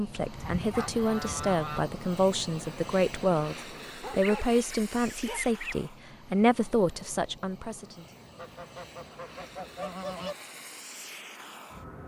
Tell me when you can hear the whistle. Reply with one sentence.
The whistle can't be heard in this clip.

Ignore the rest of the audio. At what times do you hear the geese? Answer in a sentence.
You can hear the geese from 0.3 to 1.9 s, from 4.2 to 5.8 s and from 8.3 to 10.3 s.